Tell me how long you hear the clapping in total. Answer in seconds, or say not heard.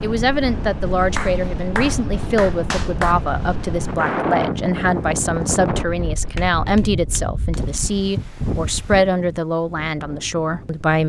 3 s.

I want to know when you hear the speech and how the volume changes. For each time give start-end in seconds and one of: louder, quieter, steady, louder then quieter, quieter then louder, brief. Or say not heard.
0.0-11.0 steady.